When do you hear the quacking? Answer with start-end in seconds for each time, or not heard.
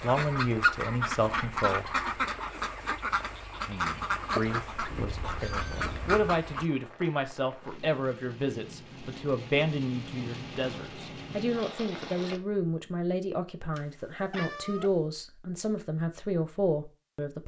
0.0-6.7.